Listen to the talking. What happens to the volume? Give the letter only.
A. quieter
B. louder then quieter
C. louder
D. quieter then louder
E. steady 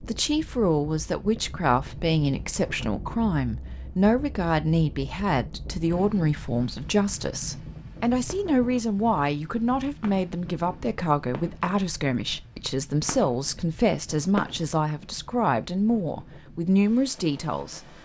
E.